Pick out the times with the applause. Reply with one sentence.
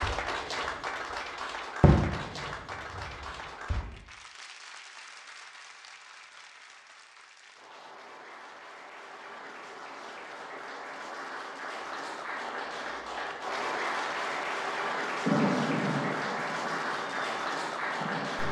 You can hear the applause from 0.0 to 18.4 s.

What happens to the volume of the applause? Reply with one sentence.
The volume of the applause goes down, then up.